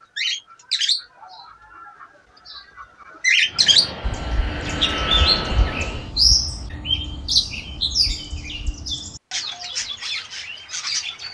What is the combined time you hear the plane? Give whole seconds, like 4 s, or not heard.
3 s.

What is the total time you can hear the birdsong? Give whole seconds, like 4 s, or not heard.
11 s.